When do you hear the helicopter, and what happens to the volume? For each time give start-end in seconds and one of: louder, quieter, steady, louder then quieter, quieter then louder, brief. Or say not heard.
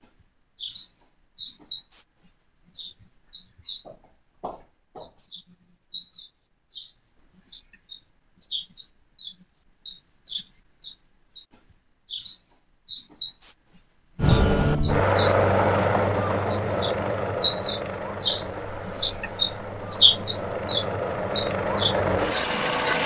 14.2-23.0 quieter then louder.